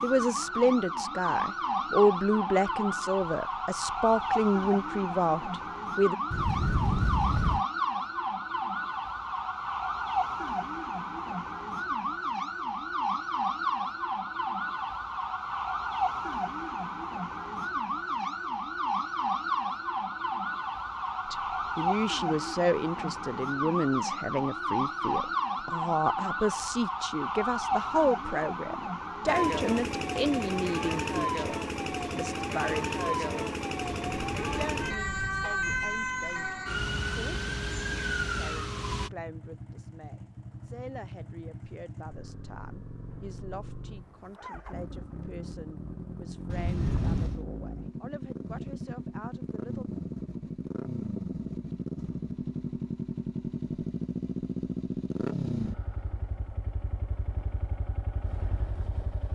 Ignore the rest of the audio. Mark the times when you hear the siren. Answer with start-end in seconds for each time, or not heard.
0.0-39.1.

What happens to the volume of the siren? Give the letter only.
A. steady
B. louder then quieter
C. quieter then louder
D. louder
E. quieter
A.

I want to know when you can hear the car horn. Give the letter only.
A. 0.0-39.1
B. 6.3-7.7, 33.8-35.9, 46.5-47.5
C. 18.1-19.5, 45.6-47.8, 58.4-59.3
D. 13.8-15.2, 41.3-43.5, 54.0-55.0
B.